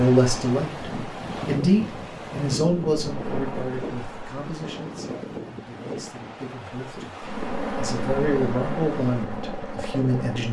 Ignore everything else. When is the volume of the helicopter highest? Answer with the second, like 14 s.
8 s.